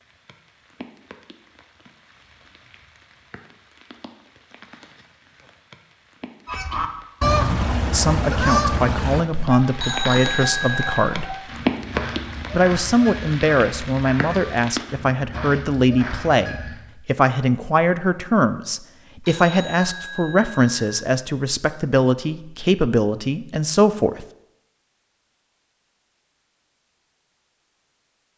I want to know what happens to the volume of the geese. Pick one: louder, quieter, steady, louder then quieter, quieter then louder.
quieter.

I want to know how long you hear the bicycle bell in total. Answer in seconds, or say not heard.
3 s.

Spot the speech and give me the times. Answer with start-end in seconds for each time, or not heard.
7.9-11.3, 12.5-24.2.